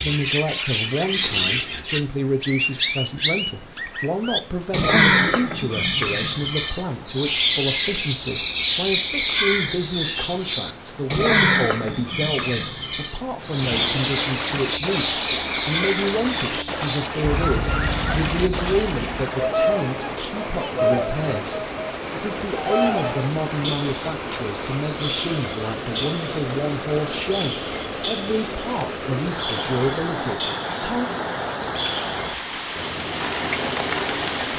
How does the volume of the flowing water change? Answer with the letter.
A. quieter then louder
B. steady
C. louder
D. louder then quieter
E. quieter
C.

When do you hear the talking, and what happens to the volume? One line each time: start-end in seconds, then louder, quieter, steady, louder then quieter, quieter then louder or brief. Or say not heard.
0.0-31.1 steady.